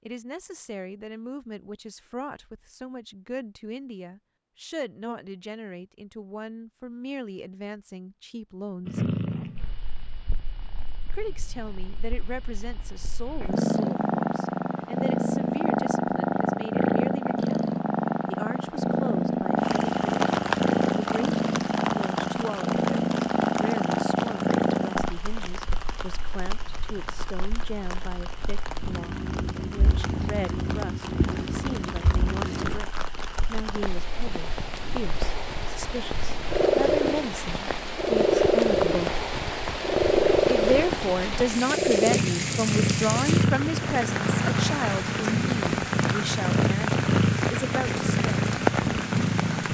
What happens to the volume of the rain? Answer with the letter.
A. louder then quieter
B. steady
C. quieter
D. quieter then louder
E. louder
D.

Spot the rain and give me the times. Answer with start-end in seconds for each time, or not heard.
19.6-49.6.